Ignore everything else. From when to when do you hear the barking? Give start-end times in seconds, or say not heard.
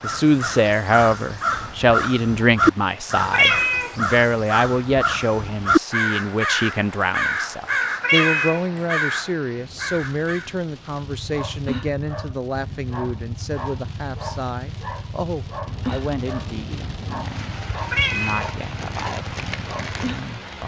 11.0-20.2.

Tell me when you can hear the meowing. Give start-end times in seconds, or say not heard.
3.3-4.0, 8.0-8.7, 17.9-18.4.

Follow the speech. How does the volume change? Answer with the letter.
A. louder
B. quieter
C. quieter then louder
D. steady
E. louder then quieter
B.